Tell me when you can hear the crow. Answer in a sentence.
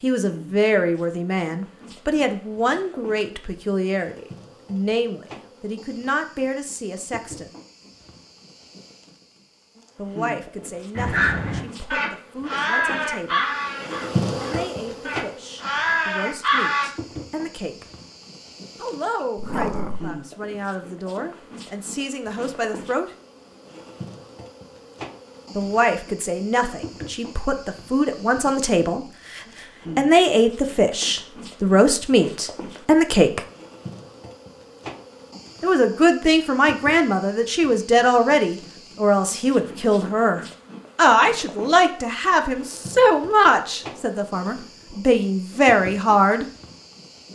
You can hear the crow from 10.9 to 16.9 s.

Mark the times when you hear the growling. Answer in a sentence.
You can hear the growling from 19.4 to 20.2 s.